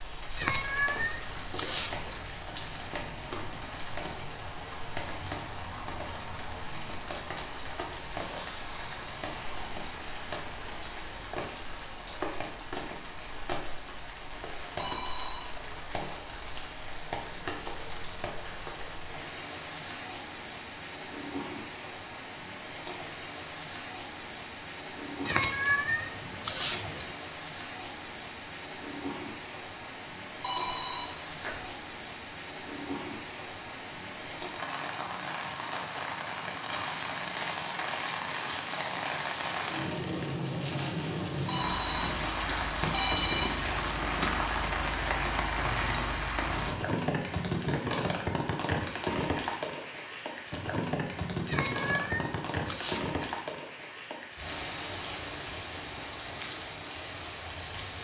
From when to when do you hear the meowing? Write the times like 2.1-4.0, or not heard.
0.3-2.2, 25.2-27.1, 51.5-53.4.